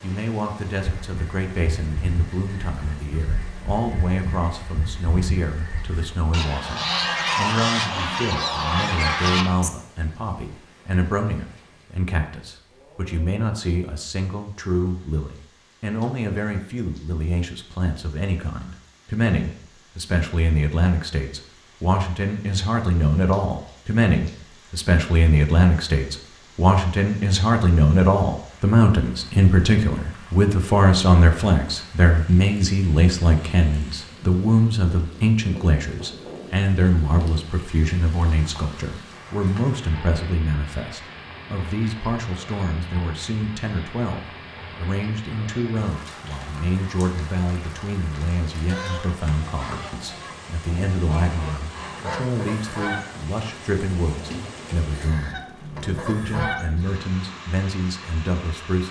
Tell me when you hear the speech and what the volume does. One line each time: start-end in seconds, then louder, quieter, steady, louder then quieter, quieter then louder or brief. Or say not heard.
0.0-58.8 louder then quieter.